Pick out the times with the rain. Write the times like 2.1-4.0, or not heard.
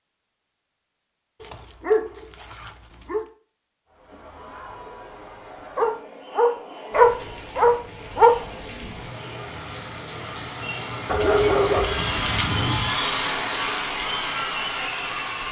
6.9-15.4.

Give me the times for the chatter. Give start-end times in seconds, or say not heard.
3.9-15.4.